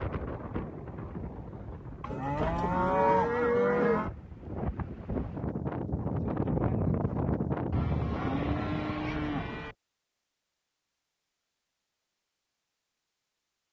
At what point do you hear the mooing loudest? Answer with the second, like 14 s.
3 s.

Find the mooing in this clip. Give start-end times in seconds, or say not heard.
2.0-4.1, 7.7-9.8.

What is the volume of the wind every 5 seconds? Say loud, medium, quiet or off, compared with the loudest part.
medium, loud, off.